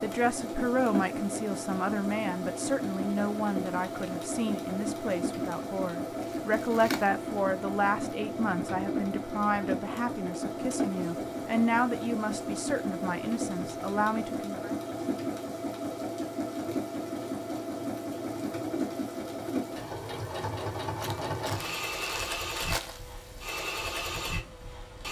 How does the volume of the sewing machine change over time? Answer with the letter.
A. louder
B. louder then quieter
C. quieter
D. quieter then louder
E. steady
E.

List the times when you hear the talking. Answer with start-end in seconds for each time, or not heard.
0.0-14.7.